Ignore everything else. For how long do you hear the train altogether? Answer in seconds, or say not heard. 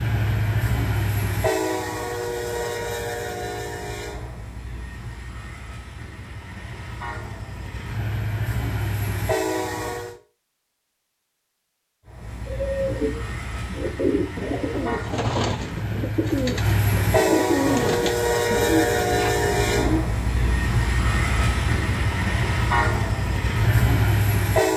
23 s.